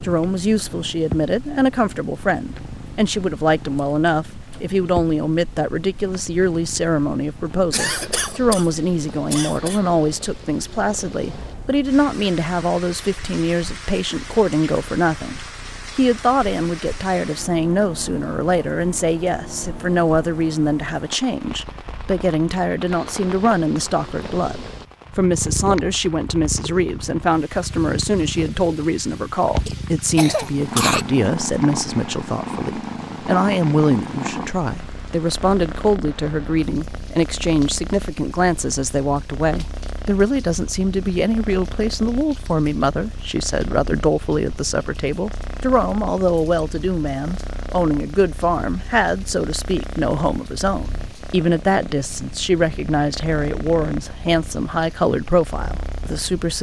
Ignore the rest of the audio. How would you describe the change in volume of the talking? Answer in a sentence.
The loudness of the talking stays about the same.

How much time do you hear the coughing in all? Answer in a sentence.
The coughing can be heard for 3 seconds in total.